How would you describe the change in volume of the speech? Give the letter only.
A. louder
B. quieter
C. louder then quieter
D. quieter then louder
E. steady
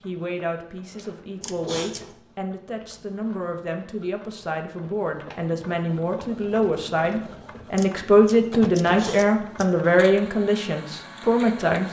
A.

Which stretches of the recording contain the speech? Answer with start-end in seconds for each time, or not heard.
0.0-11.8.